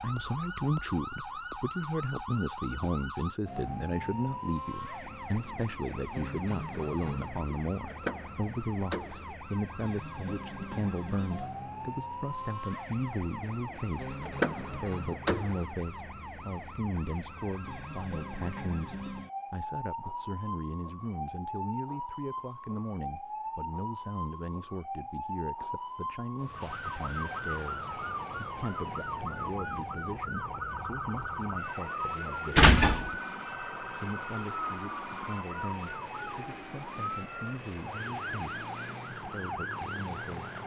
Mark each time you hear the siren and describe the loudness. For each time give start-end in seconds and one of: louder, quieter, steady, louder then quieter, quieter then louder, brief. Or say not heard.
0.0-40.6 steady.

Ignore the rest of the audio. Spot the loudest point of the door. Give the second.
33 s.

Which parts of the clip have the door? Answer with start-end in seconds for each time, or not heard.
7.8-9.3, 14.2-15.7, 32.5-33.1.